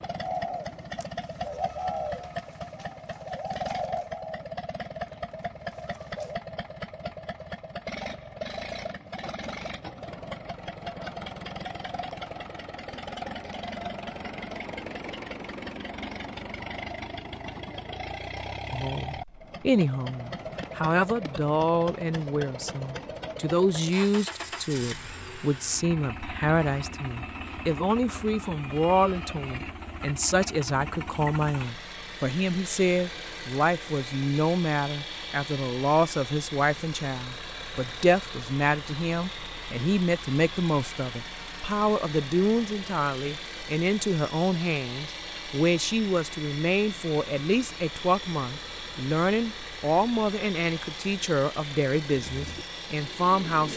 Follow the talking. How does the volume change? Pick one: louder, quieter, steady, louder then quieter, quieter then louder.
steady.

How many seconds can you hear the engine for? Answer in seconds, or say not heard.
54 s.